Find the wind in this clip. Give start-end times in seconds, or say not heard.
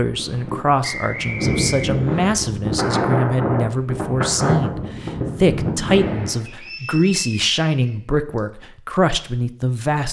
0.0-6.5.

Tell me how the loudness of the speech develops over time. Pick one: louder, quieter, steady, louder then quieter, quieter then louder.
steady.